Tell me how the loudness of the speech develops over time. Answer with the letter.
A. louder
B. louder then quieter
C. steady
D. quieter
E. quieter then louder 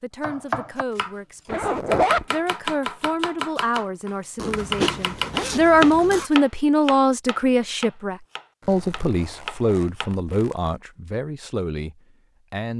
B.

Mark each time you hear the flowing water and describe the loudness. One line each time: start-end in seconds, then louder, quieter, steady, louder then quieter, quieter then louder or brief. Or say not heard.
not heard.